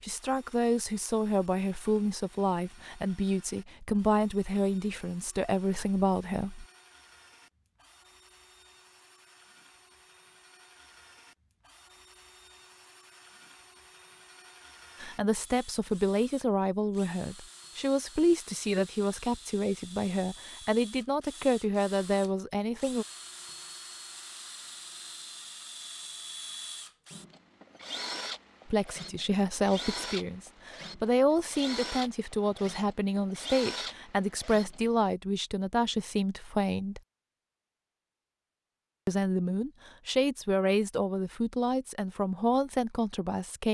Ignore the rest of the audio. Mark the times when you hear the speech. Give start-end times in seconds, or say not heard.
0.0-6.7, 15.0-23.1, 28.7-37.0, 39.0-43.6.